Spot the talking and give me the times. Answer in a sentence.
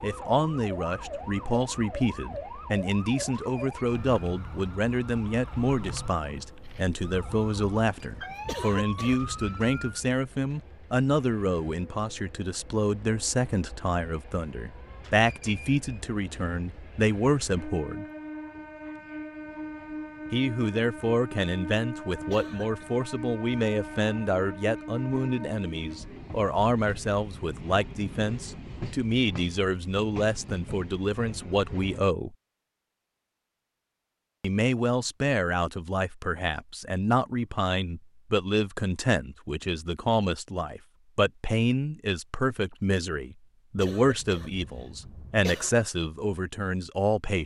The talking can be heard from 0.0 to 18.1 s, from 20.3 to 32.4 s and from 34.4 to 47.4 s.